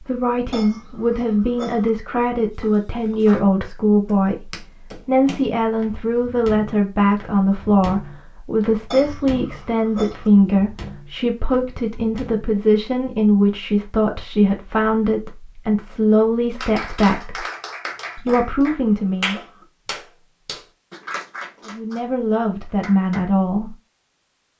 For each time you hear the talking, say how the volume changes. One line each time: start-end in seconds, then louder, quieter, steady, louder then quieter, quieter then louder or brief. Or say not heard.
0.0-17.4 steady
18.1-19.4 brief
21.6-23.8 brief.